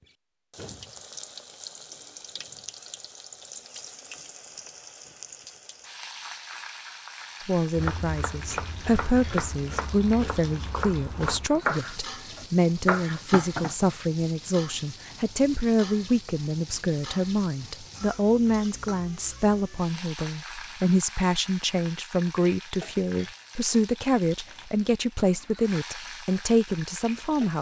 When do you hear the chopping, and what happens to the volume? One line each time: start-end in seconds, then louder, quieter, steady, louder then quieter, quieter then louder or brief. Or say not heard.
7.8-13.8 louder.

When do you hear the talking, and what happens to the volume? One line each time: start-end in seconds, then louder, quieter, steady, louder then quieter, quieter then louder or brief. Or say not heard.
7.4-27.5 steady.